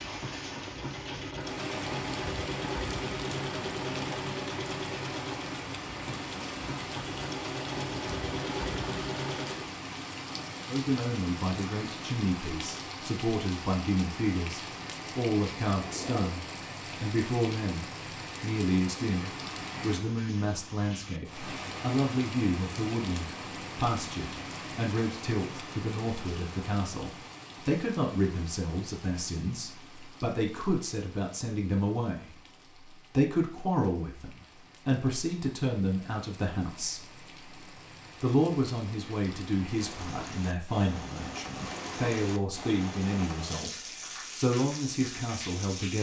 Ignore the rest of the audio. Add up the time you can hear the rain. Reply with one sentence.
The rain can be heard for 46 seconds in total.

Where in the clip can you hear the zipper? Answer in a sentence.
You can hear the zipper from 15.8 to 16.5 s.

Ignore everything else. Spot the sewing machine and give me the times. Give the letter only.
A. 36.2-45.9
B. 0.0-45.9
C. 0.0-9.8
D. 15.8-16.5
C.